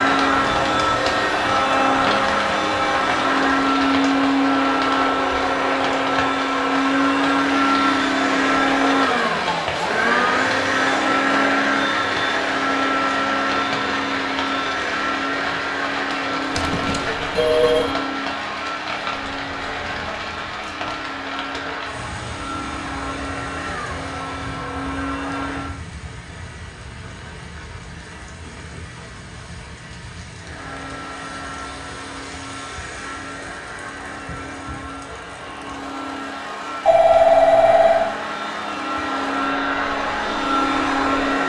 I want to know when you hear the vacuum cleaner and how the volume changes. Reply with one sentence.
You can hear the vacuum cleaner from 0.0 to 25.8 s, getting quieter; and from 30.4 to 41.4 s, getting louder.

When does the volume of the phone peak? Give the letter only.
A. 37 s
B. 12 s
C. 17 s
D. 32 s
A.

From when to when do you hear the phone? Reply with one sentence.
You can hear the phone from 16.5 to 17.9 s and from 36.9 to 38.1 s.